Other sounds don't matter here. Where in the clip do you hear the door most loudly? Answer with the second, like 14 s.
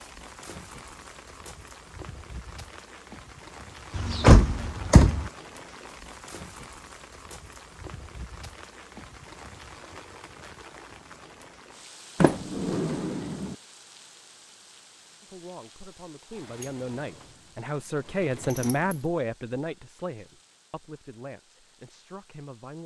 4 s.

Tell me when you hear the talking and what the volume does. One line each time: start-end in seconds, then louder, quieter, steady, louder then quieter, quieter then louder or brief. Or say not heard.
15.2-22.8 louder then quieter.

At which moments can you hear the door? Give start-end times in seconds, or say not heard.
4.0-5.3, 12.2-13.6, 16.3-19.1.